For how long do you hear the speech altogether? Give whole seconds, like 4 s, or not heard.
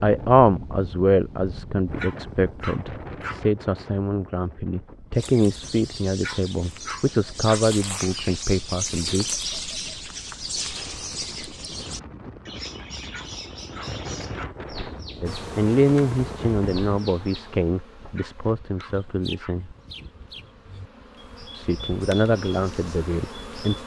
16 s.